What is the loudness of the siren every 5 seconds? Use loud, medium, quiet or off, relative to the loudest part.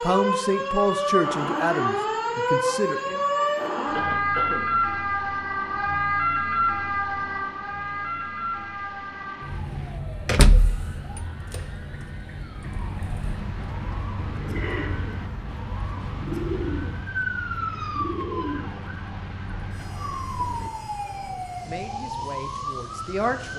loud, loud, quiet, medium, medium.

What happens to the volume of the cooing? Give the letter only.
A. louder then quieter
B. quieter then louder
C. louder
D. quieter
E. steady
A.